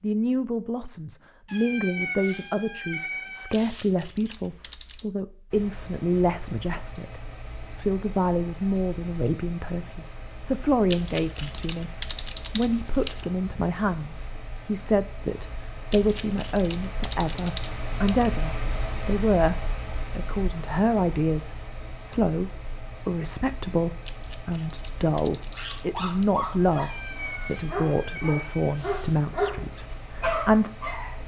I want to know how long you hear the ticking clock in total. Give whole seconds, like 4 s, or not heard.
not heard.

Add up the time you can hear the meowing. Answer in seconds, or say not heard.
5 s.